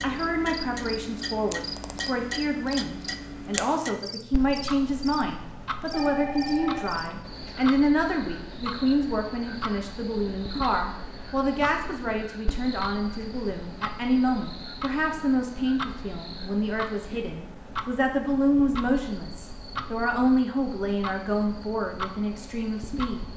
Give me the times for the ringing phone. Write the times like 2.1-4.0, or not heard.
5.9-7.6.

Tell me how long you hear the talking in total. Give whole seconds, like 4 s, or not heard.
23 s.